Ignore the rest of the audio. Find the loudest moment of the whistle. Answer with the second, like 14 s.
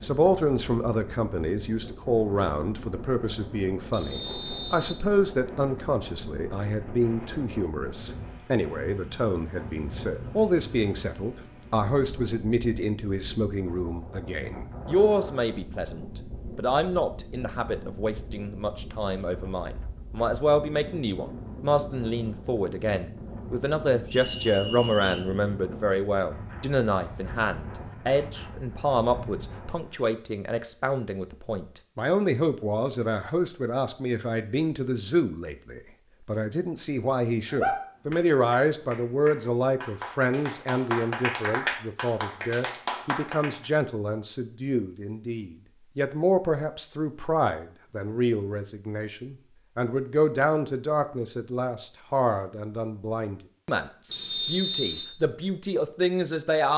55 s.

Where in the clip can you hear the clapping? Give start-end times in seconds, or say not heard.
37.5-43.6.